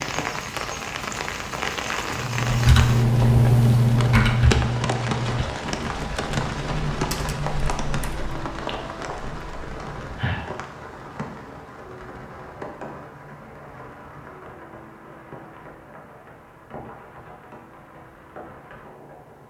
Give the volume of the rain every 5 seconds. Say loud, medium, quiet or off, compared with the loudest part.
loud, loud, medium, quiet.